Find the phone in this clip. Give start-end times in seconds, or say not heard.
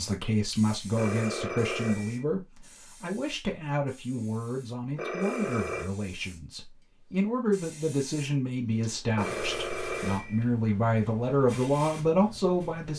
0.9-2.2, 5.0-5.9, 9.2-10.4.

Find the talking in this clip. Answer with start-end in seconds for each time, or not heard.
0.0-12.9.